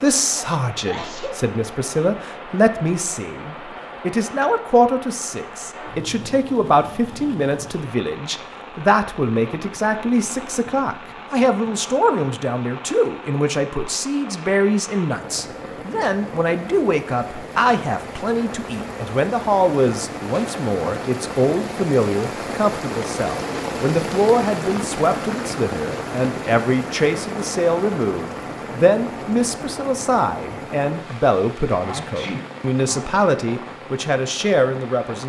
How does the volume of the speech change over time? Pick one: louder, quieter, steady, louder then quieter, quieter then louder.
steady.